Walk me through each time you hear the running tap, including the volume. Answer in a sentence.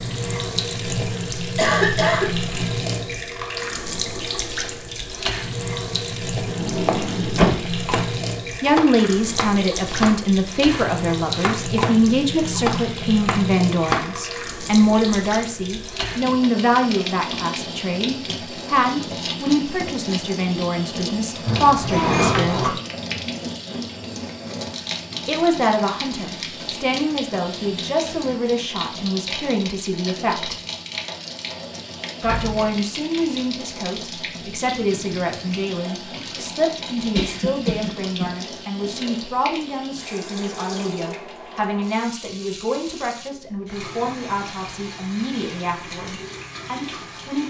You can hear the running tap from 0.0 to 47.4 s, getting quieter.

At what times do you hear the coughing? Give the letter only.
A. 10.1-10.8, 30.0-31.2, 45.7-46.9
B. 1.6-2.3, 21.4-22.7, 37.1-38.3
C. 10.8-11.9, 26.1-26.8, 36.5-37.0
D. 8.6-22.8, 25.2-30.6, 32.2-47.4
B.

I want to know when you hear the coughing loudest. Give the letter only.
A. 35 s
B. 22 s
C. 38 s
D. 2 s
D.